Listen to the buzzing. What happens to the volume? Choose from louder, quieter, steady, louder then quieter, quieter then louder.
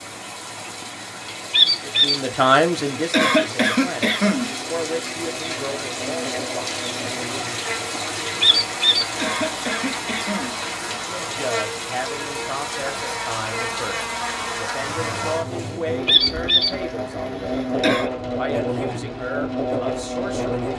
louder.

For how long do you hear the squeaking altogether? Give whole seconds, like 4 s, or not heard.
2 s.